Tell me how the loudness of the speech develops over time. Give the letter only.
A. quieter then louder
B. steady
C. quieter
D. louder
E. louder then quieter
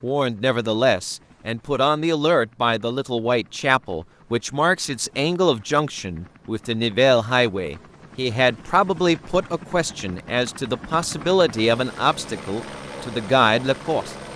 B.